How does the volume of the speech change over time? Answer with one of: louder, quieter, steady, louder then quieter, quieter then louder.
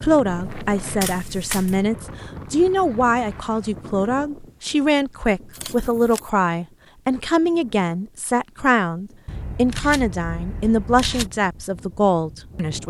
steady.